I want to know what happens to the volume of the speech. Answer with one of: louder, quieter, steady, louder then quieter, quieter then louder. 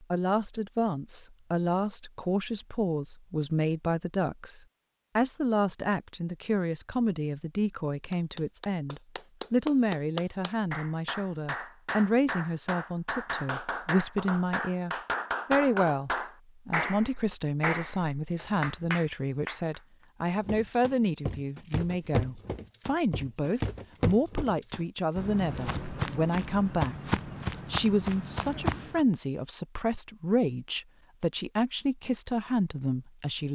steady.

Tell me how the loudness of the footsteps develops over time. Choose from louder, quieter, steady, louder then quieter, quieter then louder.
steady.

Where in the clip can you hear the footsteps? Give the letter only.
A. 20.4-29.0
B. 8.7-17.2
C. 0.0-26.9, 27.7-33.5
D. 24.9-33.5
A.